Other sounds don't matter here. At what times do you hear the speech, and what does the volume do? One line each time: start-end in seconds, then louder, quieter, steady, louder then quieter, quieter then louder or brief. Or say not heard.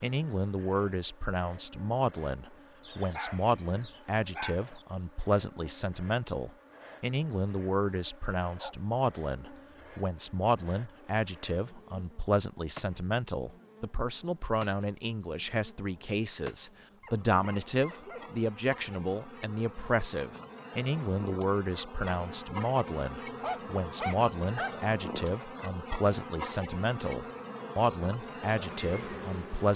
0.0-29.7 steady.